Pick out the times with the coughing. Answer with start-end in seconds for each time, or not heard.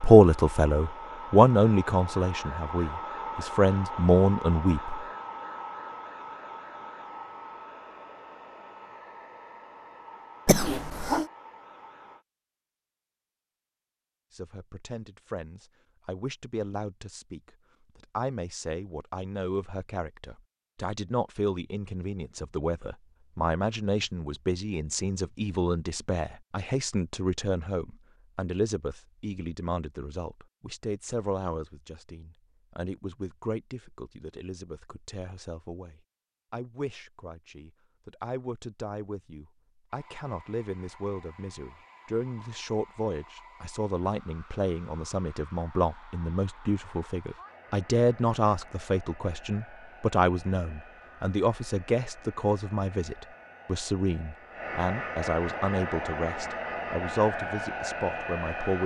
10.4-11.2.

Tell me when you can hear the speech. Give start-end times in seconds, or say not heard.
0.0-5.0, 14.3-58.8.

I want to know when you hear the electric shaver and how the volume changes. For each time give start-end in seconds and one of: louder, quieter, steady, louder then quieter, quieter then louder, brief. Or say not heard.
not heard.